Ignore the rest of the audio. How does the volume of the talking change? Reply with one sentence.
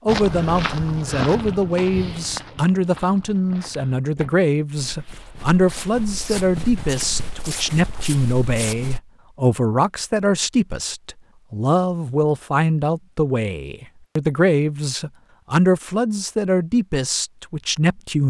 The loudness of the talking stays about the same.